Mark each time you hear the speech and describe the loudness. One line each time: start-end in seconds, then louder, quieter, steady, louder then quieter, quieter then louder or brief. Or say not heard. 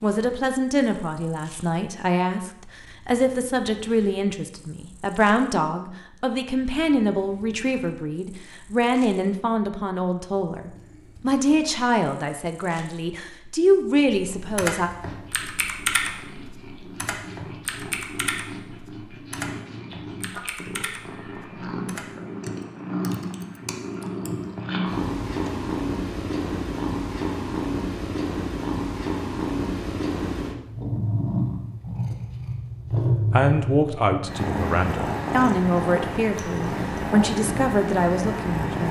0.0-14.9 steady
33.3-38.8 steady.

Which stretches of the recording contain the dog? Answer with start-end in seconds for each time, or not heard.
not heard.